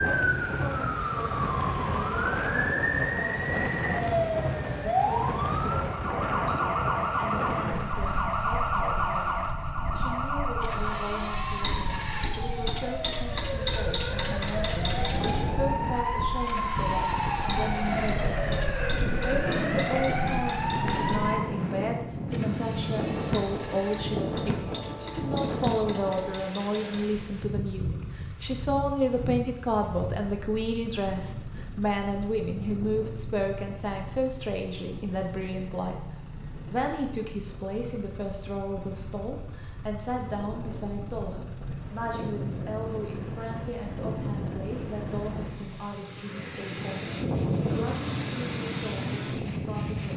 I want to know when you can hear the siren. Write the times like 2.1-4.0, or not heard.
0.0-21.4.